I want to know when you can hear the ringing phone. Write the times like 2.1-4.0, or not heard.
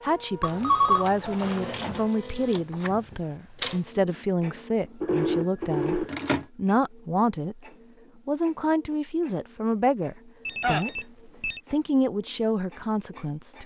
0.4-2.0, 5.0-6.5, 10.4-11.6.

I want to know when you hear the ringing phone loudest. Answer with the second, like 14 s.
1 s.